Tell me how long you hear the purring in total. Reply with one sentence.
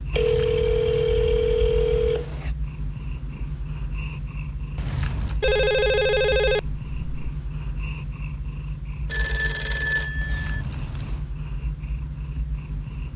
The purring can be heard for 13 seconds in total.